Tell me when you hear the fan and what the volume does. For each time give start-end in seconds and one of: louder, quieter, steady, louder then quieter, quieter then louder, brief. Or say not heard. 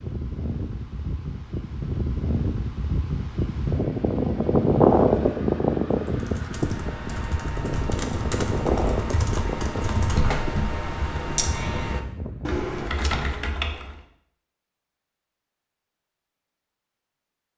0.0-12.9 louder then quieter.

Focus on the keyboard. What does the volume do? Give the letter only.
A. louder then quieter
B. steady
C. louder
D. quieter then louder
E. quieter
C.